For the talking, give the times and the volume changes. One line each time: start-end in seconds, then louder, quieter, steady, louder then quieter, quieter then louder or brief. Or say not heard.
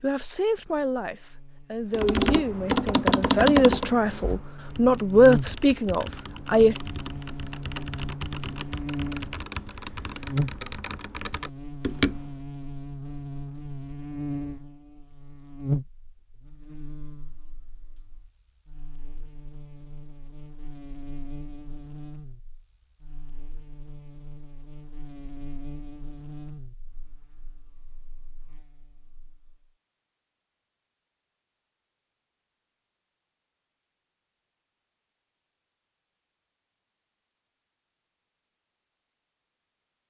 0.0-6.8 louder.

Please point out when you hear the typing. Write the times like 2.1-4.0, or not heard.
1.9-12.4.